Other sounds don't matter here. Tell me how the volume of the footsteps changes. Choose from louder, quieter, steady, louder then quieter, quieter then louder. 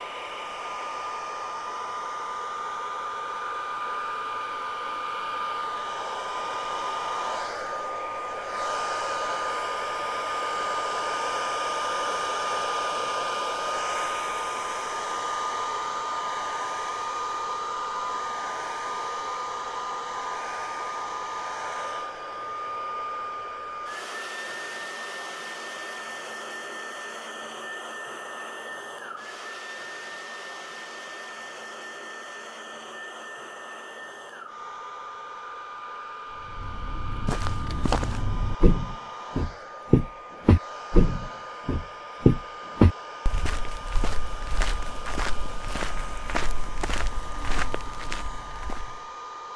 louder then quieter.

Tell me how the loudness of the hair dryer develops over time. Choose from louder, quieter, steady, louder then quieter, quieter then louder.
quieter.